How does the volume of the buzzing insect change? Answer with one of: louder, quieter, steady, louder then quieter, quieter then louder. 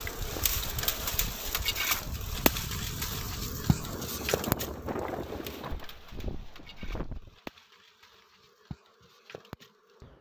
quieter.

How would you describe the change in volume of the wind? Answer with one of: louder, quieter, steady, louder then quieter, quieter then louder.
louder then quieter.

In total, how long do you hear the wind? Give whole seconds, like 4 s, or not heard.
7 s.